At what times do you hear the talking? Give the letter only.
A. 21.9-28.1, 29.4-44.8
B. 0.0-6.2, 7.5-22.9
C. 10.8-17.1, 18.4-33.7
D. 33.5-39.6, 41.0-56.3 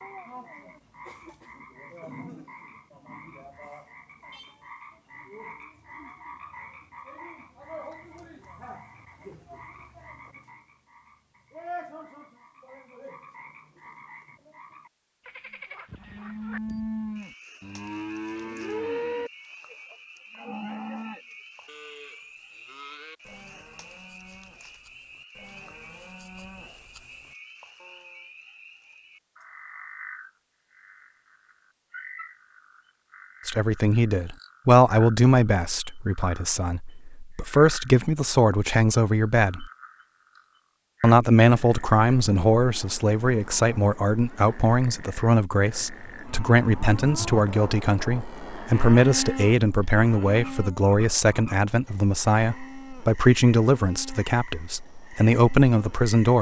D.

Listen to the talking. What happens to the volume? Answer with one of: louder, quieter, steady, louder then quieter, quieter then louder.
steady.